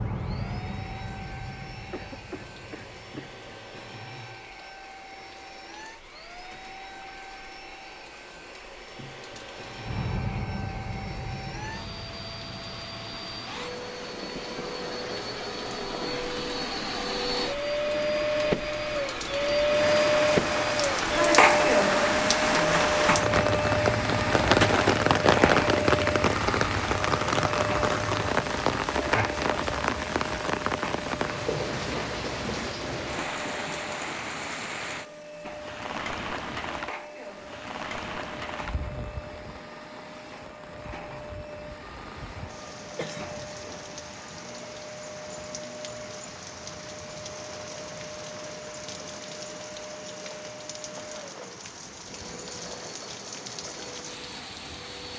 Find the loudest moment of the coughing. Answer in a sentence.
The volume of the coughing peaks at 43 seconds.